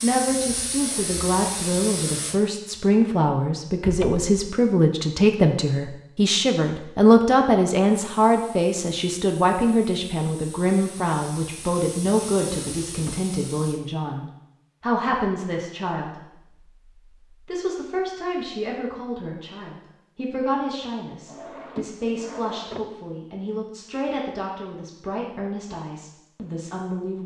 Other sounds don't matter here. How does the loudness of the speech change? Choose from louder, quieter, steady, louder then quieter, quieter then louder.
quieter.